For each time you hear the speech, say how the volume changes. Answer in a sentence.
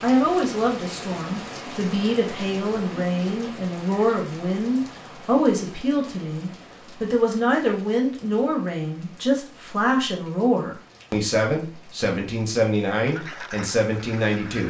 The speech can be heard from 0.0 to 14.6 s, at a steady volume.